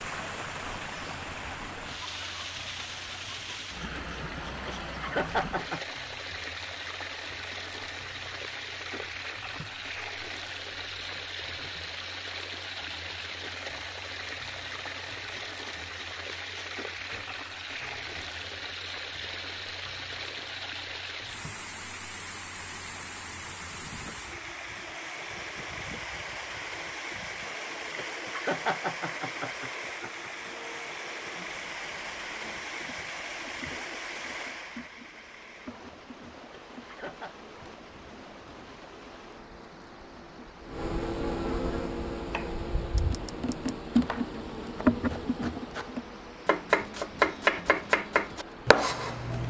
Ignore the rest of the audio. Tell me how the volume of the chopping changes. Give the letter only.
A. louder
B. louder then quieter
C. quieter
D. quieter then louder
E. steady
A.